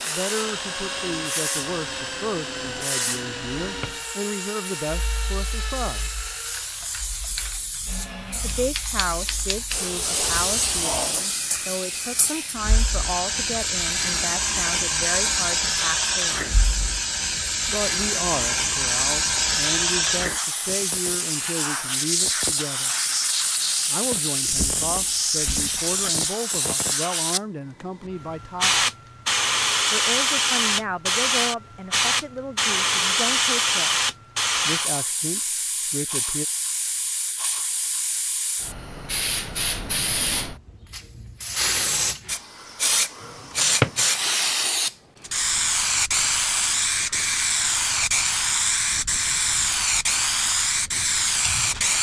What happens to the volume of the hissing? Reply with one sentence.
The volume of the hissing goes up.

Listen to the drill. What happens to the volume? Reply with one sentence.
The loudness of the drill goes down.